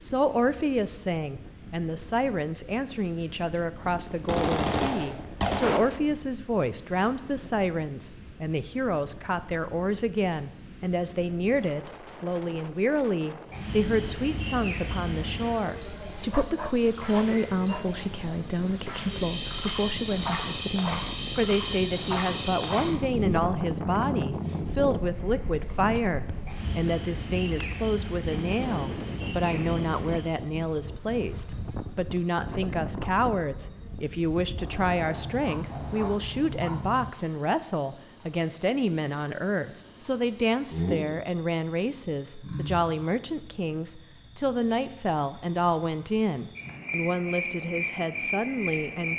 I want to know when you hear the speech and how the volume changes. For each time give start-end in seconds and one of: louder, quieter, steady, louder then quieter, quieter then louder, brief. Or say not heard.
0.0-49.1 steady.